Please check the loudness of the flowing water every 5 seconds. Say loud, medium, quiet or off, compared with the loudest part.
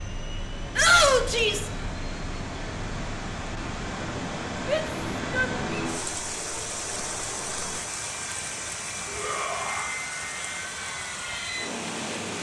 loud, loud, medium.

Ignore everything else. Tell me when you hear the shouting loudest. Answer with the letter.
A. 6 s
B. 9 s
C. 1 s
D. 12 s
C.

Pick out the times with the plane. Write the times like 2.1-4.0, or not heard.
0.0-12.3.